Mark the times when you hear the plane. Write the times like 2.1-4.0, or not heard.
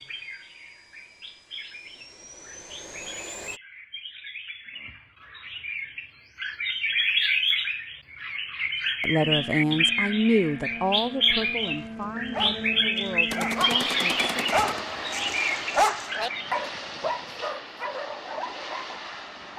0.0-3.6, 9.2-19.5.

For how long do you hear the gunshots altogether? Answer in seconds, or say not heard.
2 s.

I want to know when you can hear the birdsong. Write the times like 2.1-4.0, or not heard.
0.0-16.6.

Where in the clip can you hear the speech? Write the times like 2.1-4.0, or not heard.
9.0-14.3.